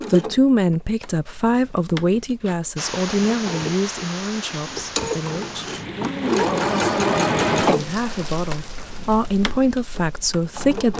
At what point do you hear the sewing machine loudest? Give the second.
7 s.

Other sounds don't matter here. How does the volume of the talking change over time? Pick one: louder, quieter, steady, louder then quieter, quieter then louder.
quieter then louder.